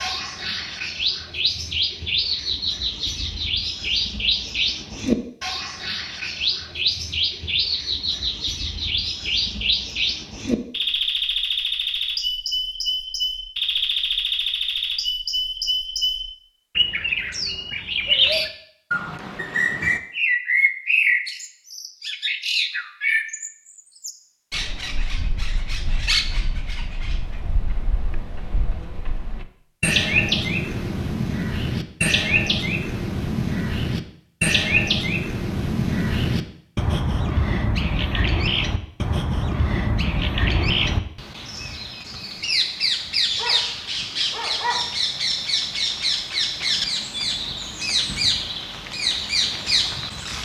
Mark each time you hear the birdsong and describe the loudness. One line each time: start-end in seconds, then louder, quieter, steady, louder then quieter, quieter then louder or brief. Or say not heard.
0.0-50.4 steady.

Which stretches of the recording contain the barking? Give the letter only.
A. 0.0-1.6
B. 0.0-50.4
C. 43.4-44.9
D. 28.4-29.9
C.